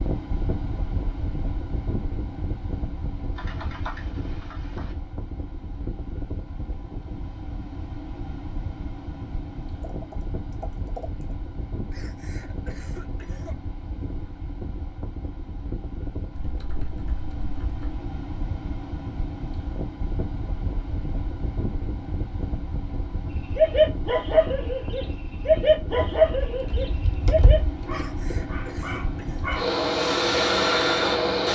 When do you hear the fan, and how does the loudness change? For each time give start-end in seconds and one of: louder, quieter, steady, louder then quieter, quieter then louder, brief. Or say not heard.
0.0-31.4 louder.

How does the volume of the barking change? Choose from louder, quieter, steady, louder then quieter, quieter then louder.
quieter then louder.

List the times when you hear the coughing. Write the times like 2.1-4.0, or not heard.
11.9-13.6, 27.9-29.6.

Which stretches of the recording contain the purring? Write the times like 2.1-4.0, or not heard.
not heard.